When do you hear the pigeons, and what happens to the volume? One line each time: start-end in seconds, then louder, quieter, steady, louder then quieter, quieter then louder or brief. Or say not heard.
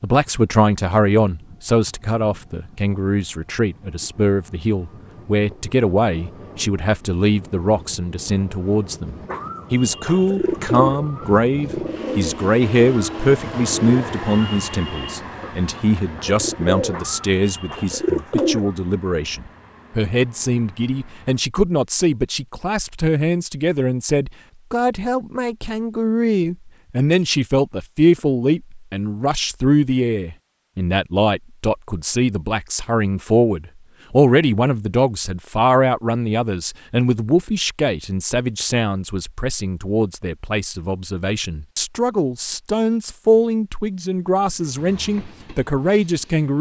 9.2-18.7 quieter then louder.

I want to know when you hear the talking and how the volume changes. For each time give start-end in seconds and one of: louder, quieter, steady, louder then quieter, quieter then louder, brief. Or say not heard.
0.0-46.5 steady.